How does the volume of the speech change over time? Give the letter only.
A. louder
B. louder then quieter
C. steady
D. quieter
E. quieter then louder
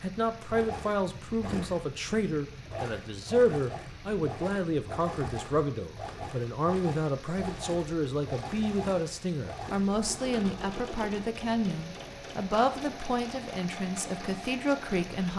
C.